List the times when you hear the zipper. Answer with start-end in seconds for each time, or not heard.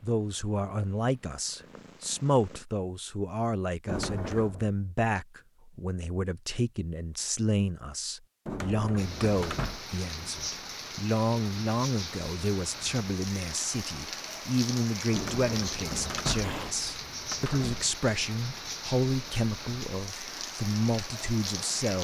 not heard.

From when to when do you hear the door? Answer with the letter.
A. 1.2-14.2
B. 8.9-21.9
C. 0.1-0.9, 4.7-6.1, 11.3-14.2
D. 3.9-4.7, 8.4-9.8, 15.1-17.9
D.